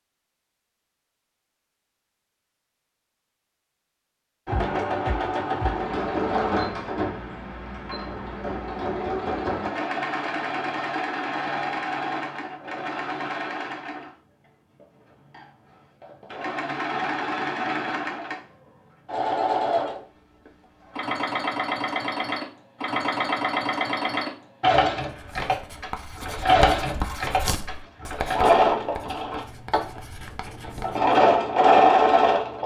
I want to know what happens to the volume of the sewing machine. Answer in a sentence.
The loudness of the sewing machine goes up.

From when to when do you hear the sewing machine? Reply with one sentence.
The sewing machine can be heard from 4.5 to 32.6 s.